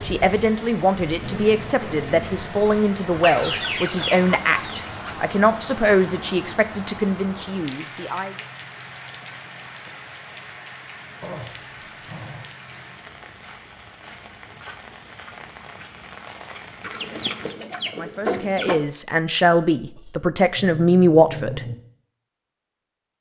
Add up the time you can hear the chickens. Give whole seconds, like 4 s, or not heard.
4 s.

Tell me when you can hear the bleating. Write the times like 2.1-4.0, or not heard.
not heard.